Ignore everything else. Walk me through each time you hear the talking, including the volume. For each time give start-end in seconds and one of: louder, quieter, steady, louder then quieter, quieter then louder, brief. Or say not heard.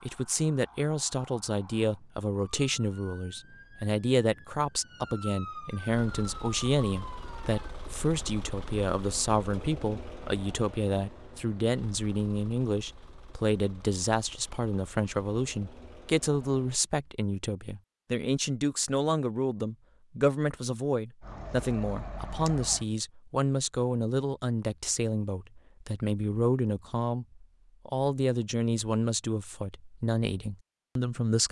0.0-31.4 steady.